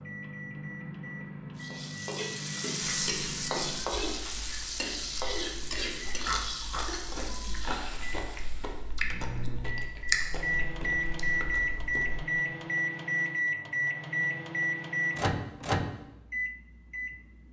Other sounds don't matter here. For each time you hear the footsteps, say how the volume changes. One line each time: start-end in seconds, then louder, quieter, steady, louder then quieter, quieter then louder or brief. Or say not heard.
not heard.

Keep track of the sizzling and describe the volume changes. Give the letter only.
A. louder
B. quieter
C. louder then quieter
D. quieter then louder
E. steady
B.